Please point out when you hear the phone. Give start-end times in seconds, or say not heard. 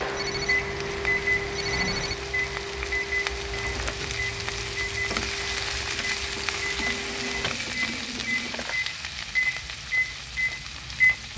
0.1-2.1, 6.8-8.8.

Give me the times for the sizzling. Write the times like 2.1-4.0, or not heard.
0.0-11.3.